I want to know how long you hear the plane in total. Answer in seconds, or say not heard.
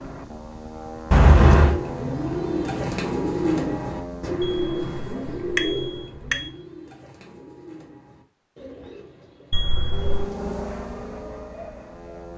7 s.